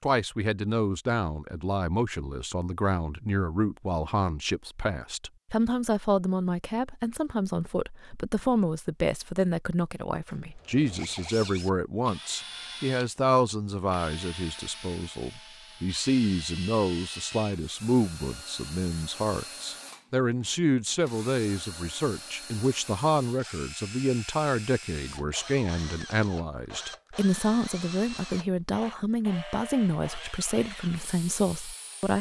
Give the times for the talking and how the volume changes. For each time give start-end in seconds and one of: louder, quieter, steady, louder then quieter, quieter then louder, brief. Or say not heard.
0.0-32.1 steady.